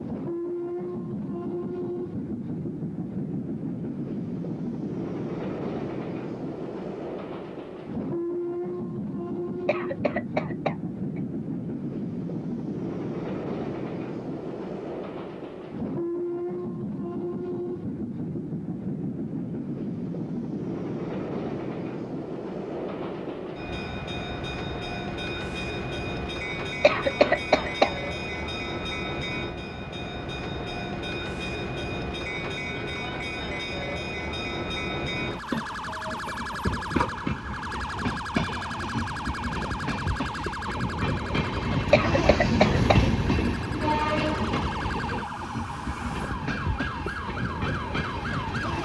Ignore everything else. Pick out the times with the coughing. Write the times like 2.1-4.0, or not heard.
9.7-11.2, 26.8-27.9, 41.9-43.5.